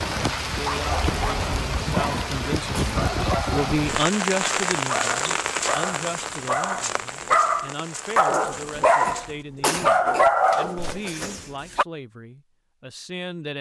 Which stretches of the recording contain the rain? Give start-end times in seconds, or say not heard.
0.0-9.4.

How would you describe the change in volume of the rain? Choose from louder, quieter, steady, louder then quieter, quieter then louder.
quieter.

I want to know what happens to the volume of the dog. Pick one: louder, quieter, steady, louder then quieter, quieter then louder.
louder.